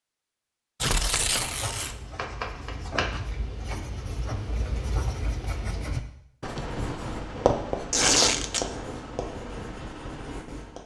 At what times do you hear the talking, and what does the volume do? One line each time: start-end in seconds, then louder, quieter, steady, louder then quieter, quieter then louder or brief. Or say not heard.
not heard.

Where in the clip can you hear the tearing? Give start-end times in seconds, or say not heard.
0.8-1.9, 7.9-8.7.